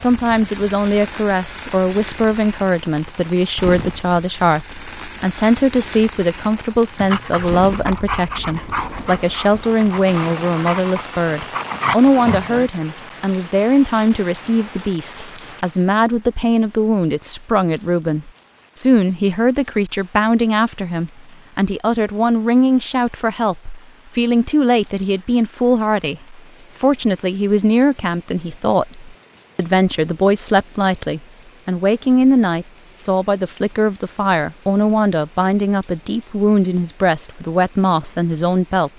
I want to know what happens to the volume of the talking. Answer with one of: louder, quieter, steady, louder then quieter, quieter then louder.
steady.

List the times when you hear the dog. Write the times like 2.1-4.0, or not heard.
7.0-12.6.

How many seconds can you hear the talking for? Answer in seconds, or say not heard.
39 s.